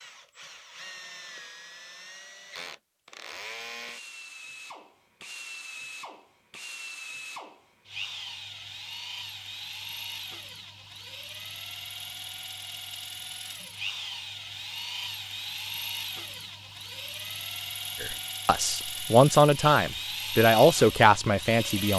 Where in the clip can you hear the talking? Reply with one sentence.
The talking can be heard from 18.0 to 21.9 s.